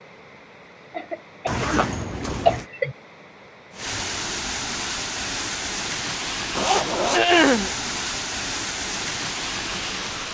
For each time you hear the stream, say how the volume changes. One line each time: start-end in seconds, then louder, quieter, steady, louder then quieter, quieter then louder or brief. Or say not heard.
0.0-10.2 louder.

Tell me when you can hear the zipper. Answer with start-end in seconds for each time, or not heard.
1.4-2.6, 6.5-7.2.